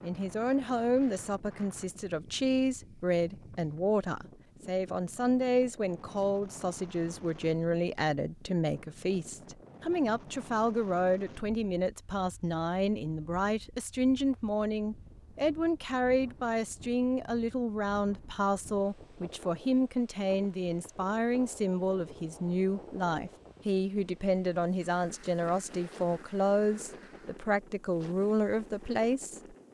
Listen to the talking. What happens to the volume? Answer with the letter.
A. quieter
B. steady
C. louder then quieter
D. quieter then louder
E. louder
B.